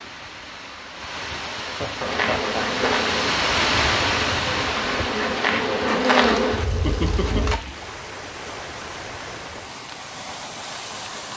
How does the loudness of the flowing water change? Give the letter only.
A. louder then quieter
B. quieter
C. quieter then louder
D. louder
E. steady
A.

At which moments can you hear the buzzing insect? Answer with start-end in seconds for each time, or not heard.
2.0-7.6.